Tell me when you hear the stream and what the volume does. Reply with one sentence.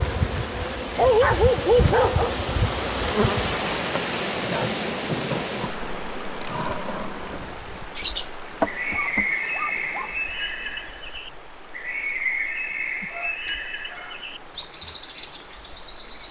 The stream can be heard from 0.0 to 16.2 s, getting quieter.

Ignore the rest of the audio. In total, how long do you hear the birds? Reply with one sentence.
You can hear the birds for 8 seconds altogether.